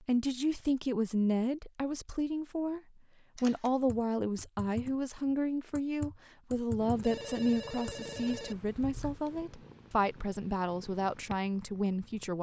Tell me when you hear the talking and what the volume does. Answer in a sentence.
The talking can be heard from 0.1 to 12.3 s, at a steady volume.